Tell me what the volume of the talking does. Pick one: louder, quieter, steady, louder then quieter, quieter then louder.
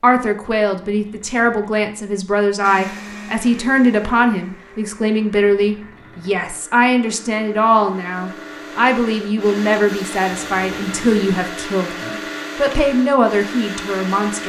steady.